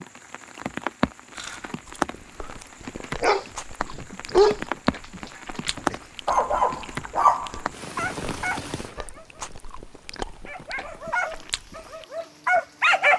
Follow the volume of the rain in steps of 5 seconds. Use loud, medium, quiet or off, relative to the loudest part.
loud, loud, quiet.